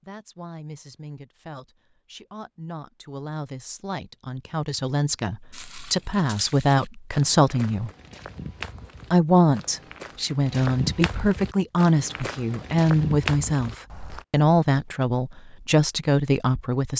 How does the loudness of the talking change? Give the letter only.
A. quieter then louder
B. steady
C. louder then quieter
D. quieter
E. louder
E.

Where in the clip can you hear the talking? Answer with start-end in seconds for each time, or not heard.
0.0-7.9, 9.1-16.9.